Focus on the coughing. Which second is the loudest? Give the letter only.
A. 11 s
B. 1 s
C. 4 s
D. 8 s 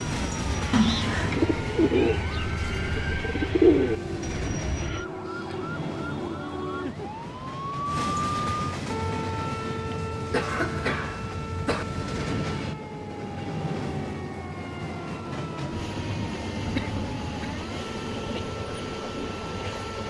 B.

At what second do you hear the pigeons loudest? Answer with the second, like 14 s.
4 s.